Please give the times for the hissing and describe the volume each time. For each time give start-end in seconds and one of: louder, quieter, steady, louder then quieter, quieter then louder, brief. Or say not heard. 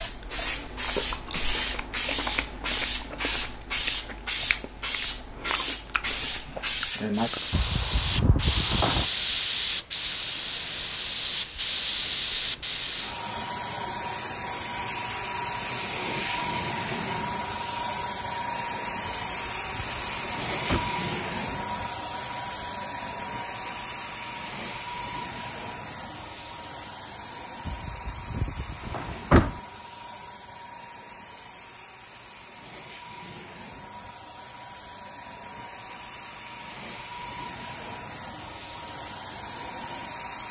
0.0-40.4 quieter.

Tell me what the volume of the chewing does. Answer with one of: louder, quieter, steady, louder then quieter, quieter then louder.
steady.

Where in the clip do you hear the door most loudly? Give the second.
29 s.